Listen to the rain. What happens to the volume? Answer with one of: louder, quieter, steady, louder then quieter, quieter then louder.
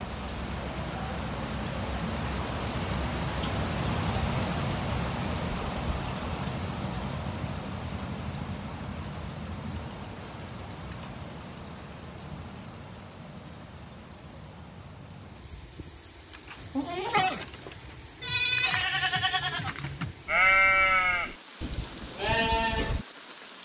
quieter.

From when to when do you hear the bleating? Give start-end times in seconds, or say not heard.
16.3-23.1.